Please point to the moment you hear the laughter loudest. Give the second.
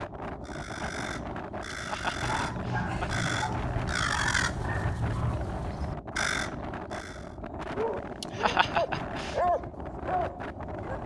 9 s.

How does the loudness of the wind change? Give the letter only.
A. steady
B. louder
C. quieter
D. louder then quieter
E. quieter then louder
A.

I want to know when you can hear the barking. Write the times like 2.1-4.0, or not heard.
2.2-5.4, 7.7-11.0.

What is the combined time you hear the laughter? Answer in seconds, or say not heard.
3 s.